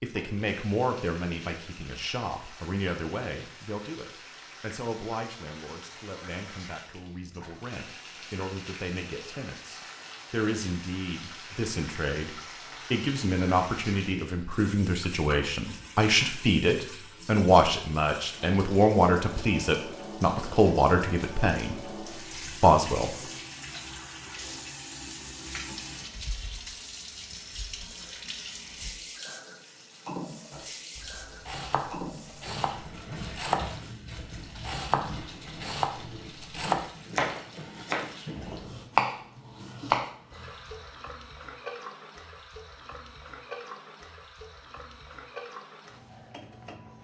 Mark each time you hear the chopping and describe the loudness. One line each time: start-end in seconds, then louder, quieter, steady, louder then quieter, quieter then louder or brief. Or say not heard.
30.5-40.5 louder.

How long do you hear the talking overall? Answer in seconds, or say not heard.
23 s.